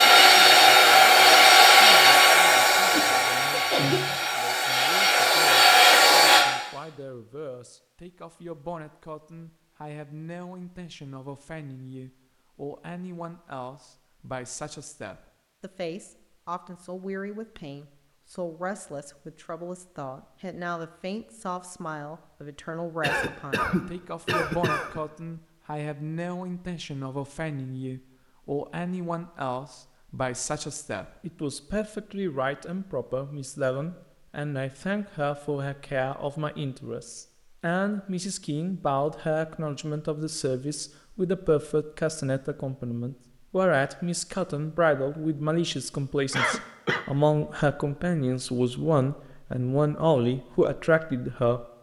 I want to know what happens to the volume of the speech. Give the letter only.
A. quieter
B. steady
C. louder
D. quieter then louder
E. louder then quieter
C.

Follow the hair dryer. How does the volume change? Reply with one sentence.
The loudness of the hair dryer goes down, then up.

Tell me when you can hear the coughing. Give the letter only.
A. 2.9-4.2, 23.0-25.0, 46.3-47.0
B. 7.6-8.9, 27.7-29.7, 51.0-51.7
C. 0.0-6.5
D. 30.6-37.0
A.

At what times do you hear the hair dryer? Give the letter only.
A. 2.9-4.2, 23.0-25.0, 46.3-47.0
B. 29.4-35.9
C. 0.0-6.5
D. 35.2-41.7
C.